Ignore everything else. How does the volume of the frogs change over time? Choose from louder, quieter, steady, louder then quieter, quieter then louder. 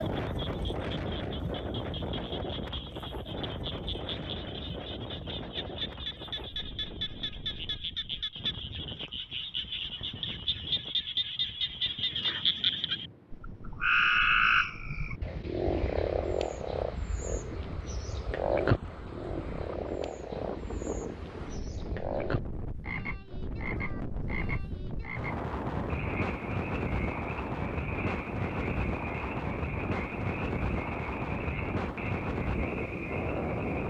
louder then quieter.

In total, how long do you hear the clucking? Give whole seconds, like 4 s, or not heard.
not heard.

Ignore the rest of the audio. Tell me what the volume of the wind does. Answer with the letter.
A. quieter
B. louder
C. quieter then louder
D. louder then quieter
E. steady
C.